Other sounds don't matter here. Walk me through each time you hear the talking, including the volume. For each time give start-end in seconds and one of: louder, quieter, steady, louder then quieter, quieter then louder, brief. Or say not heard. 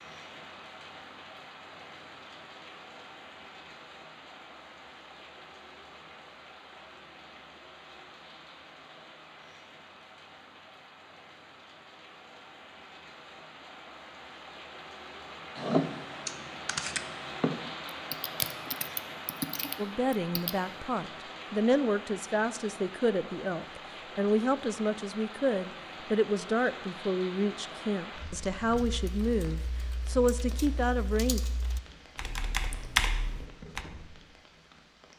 19.8-31.4 steady.